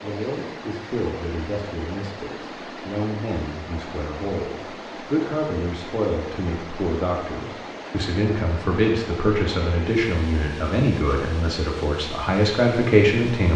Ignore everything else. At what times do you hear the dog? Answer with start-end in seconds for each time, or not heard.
not heard.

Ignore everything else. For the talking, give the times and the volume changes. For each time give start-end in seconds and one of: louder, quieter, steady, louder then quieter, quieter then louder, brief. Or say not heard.
0.0-13.5 louder.